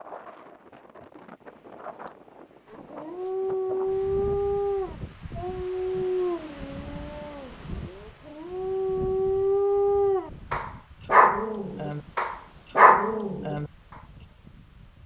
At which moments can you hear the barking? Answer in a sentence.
You can hear the barking from 2.7 to 13.7 s.